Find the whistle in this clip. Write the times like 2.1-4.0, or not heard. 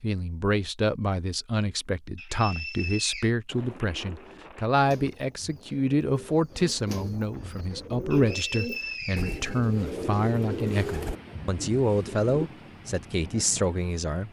2.1-3.3, 8.1-10.1.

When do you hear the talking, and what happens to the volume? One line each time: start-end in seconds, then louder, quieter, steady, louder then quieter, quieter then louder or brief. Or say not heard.
0.0-14.2 steady.